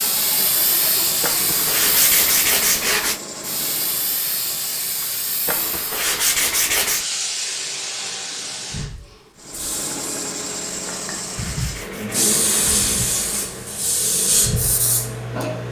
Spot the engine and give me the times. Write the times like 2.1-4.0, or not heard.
0.0-4.2, 9.3-15.6.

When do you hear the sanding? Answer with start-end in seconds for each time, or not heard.
1.2-3.2, 5.5-7.0, 10.8-13.5.